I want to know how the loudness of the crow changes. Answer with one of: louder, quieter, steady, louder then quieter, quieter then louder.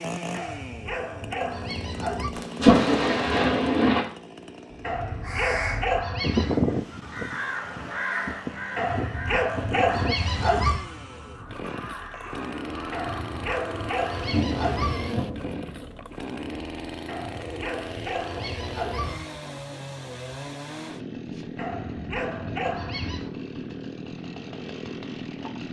quieter.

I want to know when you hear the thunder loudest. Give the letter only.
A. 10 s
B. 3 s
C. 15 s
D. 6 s
B.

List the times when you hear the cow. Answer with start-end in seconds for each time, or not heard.
not heard.